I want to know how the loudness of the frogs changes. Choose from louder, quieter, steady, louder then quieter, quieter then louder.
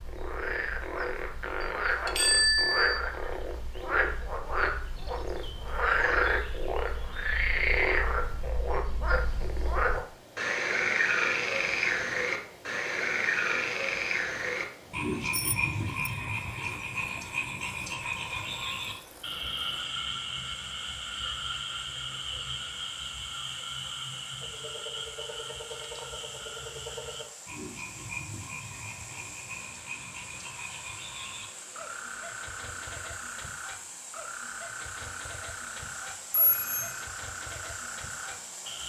quieter.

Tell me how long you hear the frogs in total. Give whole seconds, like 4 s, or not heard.
39 s.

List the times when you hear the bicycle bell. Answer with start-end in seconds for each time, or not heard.
1.6-3.0, 15.3-16.1, 36.3-37.0.